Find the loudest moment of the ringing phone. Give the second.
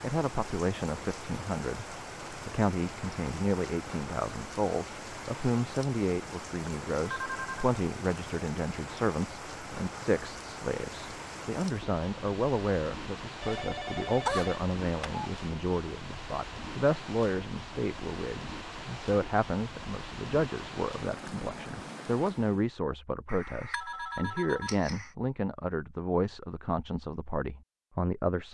14 s.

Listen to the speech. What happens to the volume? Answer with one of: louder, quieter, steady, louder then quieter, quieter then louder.
steady.